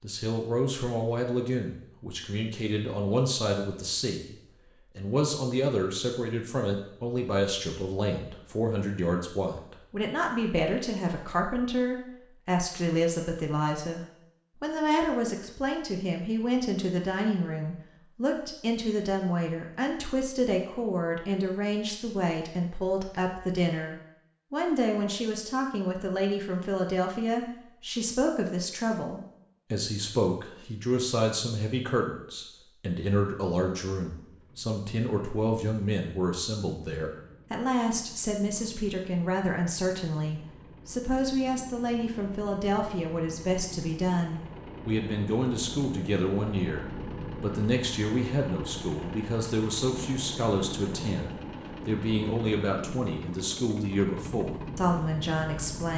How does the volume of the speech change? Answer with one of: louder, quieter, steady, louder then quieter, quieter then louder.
steady.